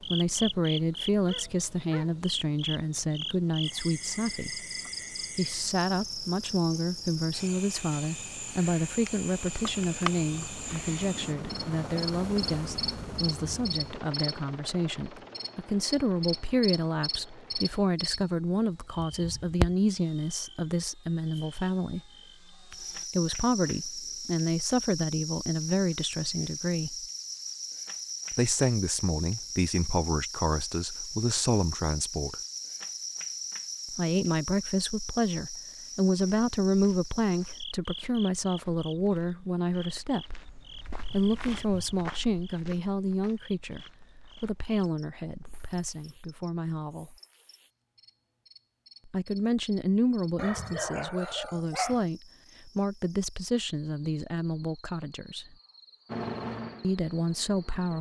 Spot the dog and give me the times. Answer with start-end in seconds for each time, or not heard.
1.2-2.2, 50.4-52.0.